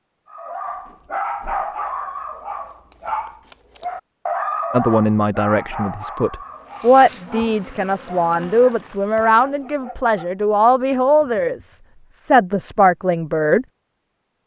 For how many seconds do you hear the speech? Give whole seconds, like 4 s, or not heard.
9 s.